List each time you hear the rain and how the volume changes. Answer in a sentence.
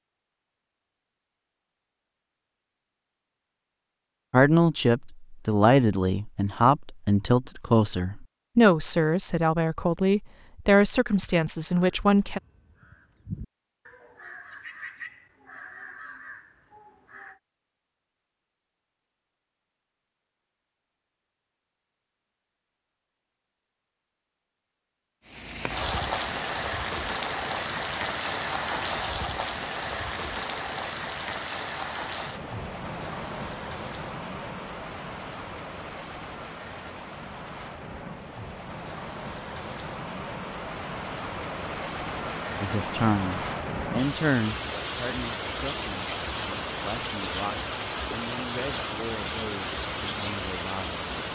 You can hear the rain from 25.2 to 51.3 s, getting quieter then louder.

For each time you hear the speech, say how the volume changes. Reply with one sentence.
The speech can be heard from 4.3 to 12.4 s, at a steady volume; and from 42.6 to 51.1 s, getting quieter.